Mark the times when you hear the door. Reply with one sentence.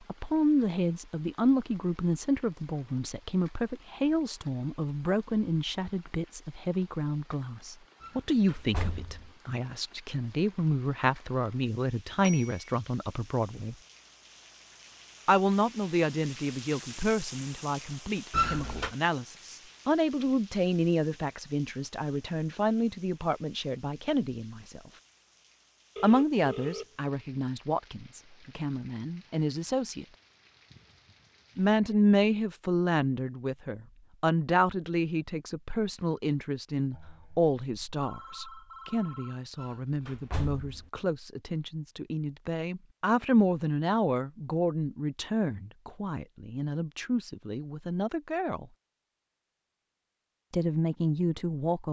The door can be heard from 8.0 to 9.3 s, from 18.3 to 18.9 s and from 39.5 to 40.9 s.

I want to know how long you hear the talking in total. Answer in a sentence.
You can hear the talking for 46 seconds altogether.